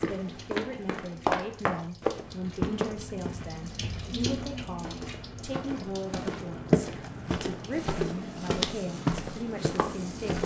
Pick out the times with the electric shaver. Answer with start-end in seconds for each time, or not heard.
not heard.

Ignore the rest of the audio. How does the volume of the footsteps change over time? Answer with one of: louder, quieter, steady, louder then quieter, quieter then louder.
quieter then louder.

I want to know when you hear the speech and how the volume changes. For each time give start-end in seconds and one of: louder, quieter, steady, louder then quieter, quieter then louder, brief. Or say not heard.
0.0-10.4 steady.